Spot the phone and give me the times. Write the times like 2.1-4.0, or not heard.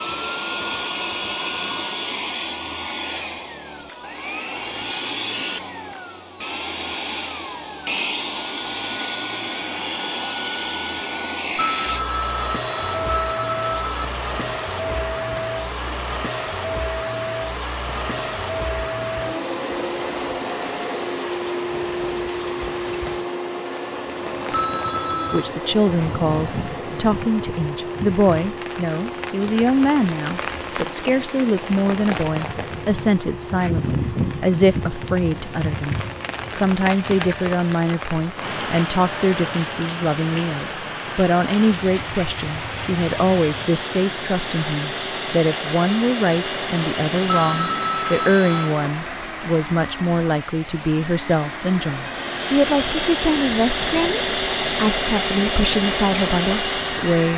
11.6-14.1, 24.5-25.5, 47.2-48.7.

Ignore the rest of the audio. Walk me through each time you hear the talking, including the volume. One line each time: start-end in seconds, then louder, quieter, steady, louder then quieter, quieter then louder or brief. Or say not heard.
25.3-57.3 steady.